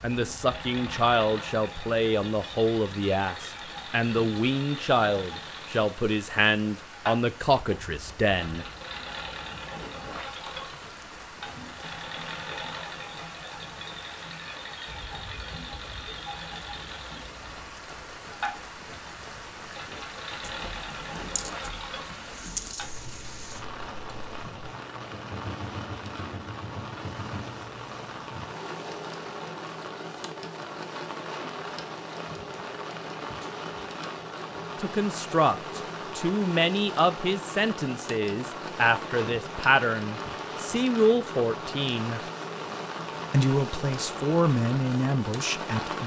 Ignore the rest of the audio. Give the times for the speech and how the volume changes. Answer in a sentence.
You can hear the speech from 0.0 to 8.7 s, at a steady volume; from 34.8 to 42.2 s, at a steady volume; and briefly from 43.3 to 46.0 s.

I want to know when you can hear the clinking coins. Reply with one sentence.
You can hear the clinking coins from 20.4 to 22.9 s.